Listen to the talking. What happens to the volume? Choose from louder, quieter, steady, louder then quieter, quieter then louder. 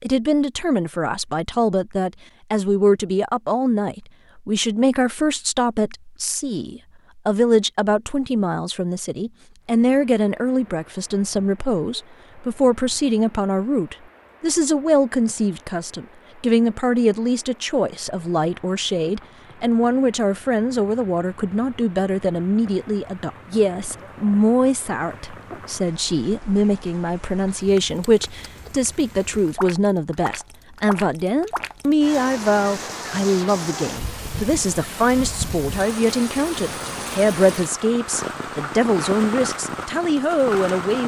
steady.